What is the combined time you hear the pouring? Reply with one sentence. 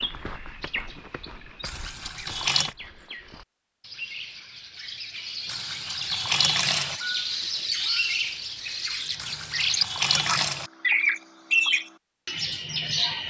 You can hear the pouring for 4 seconds altogether.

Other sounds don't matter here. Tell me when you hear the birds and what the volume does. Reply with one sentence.
You can hear the birds from 0.0 to 13.2 s, getting louder.